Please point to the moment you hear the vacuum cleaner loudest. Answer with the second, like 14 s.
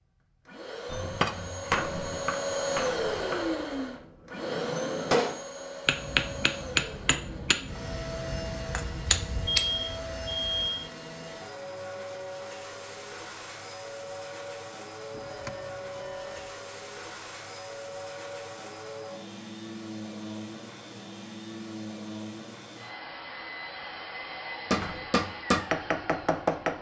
3 s.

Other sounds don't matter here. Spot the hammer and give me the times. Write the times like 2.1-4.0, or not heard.
0.9-9.7, 24.7-26.7.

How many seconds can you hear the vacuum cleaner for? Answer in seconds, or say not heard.
27 s.